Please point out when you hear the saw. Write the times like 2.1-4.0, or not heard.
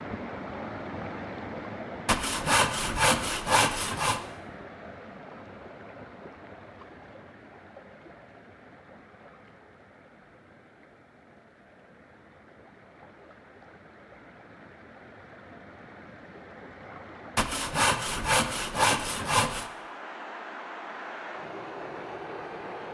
2.0-4.2, 17.4-19.6.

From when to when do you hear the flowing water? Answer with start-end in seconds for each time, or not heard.
0.0-22.9.